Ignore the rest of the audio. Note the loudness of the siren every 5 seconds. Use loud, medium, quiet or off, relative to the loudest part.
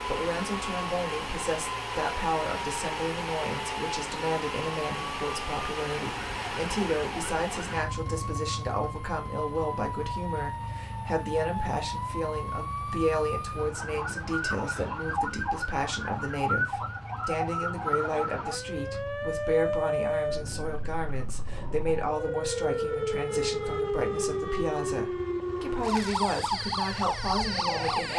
medium, medium, medium, loud, loud, loud.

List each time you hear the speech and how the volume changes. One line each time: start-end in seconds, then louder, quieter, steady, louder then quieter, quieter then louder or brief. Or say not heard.
0.0-28.1 steady.